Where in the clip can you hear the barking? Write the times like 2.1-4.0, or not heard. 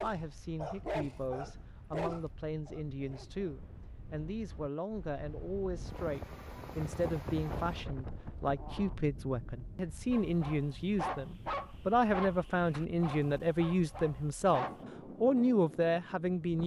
0.0-3.6, 10.1-14.8.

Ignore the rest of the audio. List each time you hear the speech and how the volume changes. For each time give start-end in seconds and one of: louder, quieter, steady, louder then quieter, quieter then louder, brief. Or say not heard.
0.0-16.6 louder.